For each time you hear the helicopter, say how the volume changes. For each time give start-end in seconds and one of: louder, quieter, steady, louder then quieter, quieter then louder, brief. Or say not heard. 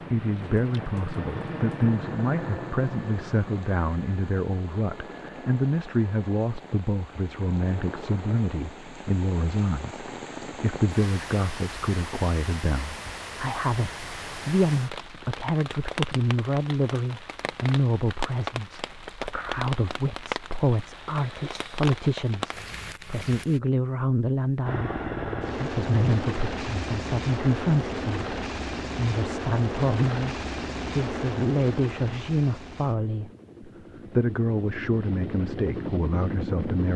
0.0-6.3 quieter
24.6-36.9 quieter then louder.